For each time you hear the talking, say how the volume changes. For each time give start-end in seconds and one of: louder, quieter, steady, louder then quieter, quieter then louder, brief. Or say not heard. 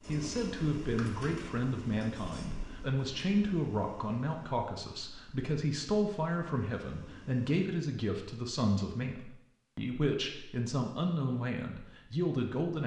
0.0-12.8 steady.